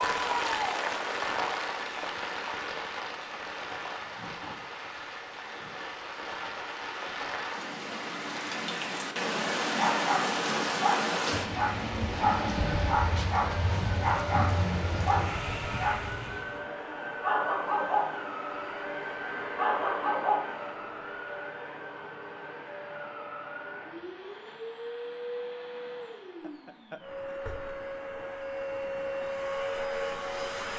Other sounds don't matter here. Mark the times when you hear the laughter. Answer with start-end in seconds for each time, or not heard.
12.1-12.9, 26.4-27.8.